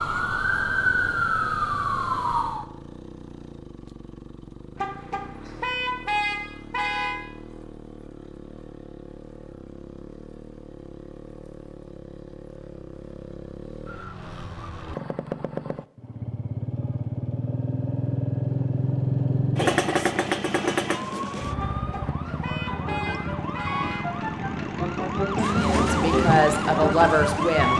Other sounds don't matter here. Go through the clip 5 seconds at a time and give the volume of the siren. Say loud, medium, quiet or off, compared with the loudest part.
loud, off, off, off, medium, loud.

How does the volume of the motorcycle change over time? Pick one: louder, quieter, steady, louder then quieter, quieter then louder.
louder then quieter.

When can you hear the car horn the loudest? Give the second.
6 s.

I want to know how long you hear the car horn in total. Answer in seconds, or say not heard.
5 s.